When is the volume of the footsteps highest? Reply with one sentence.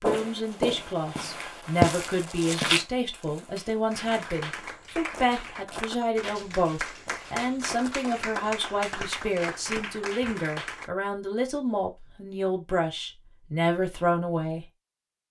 The loudest moment of the footsteps is at 2 seconds.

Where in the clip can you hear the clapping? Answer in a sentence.
The clapping can be heard from 3.9 to 10.9 s.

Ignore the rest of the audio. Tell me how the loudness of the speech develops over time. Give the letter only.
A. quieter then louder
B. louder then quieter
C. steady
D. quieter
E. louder
C.